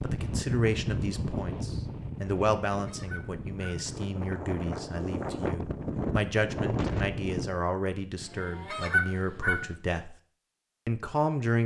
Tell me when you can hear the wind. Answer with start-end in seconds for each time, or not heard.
0.0-7.6.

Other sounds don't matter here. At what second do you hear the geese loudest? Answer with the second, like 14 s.
9 s.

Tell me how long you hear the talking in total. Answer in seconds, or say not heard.
11 s.